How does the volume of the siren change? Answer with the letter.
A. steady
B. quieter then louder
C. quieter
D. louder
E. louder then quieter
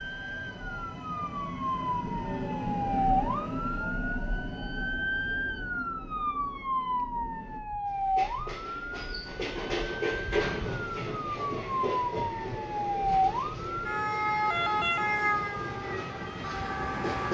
A.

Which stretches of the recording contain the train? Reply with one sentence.
The train can be heard from 0.0 to 17.2 s.